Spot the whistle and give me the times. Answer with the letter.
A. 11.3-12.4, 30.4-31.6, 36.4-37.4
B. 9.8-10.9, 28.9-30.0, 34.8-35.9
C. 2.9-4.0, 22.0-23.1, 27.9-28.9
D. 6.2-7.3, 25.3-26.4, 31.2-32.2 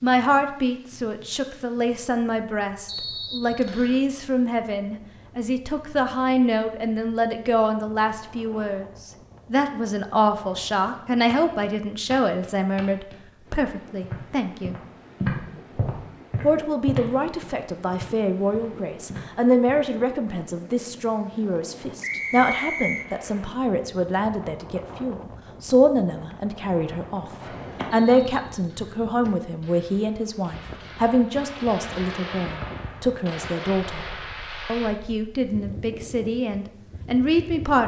C.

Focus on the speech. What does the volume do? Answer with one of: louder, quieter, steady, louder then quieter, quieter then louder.
steady.